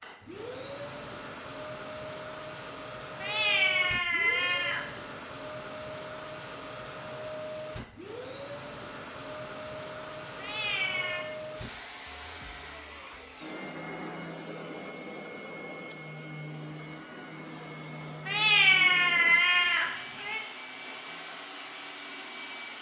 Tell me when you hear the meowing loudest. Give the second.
19 s.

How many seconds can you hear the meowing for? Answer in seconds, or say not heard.
5 s.